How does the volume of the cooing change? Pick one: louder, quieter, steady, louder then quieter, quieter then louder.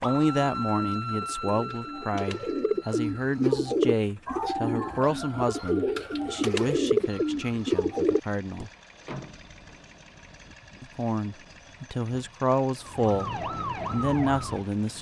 louder.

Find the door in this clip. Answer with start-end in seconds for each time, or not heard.
9.1-9.8.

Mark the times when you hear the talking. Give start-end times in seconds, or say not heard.
0.0-8.7, 10.8-14.9.